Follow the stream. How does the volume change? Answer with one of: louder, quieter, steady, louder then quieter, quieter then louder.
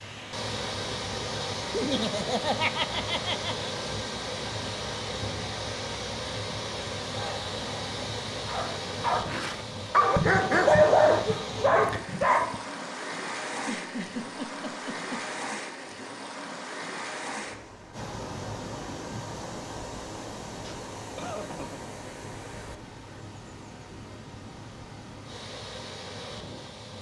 quieter.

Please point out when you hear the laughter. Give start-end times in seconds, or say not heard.
1.7-3.7, 13.5-15.4, 20.6-21.9.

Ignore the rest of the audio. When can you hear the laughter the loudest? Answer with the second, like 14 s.
3 s.